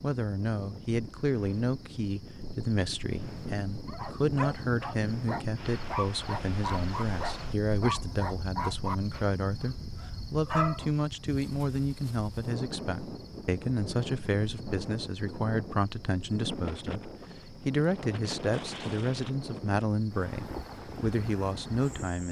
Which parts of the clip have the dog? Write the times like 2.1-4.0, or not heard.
3.9-10.9.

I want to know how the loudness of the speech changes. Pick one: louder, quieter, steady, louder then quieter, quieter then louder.
steady.